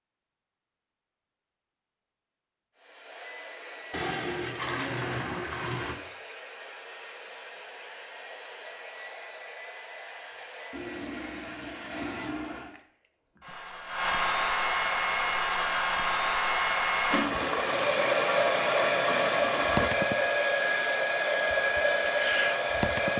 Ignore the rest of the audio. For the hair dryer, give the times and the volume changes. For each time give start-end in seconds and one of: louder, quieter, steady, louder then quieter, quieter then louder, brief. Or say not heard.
2.8-23.1 louder.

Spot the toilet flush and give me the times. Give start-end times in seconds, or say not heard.
3.9-6.0, 10.7-12.7, 17.1-19.9.